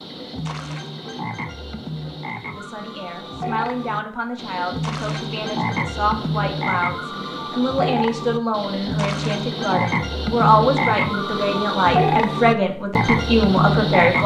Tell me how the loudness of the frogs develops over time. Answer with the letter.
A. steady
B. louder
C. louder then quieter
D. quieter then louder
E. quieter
B.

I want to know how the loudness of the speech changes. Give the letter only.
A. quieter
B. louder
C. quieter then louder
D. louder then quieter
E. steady
B.